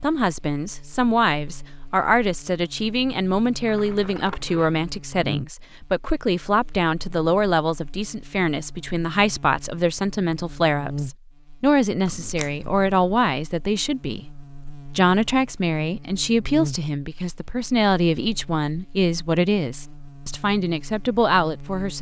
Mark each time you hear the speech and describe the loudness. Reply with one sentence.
You can hear the speech from 0.0 to 21.9 s, at a steady volume.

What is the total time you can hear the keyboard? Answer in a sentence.
You can't hear the keyboard here.